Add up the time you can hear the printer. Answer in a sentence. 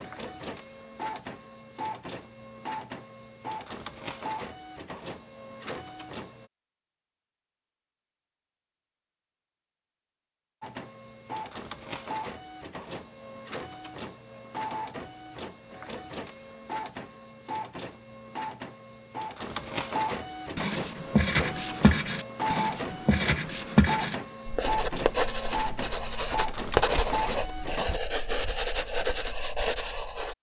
The printer can be heard for 24 seconds in total.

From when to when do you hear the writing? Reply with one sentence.
The writing can be heard from 20.6 to 30.3 s.